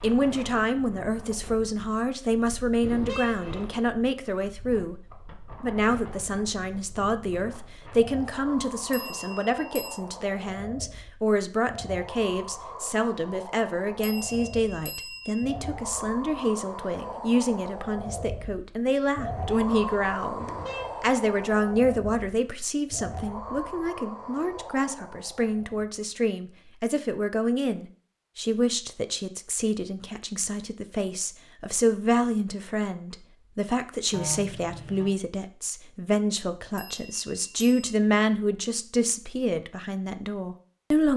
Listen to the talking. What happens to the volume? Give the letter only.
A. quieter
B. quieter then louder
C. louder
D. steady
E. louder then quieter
D.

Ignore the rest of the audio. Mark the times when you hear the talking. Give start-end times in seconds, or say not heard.
0.0-5.0, 5.6-41.1.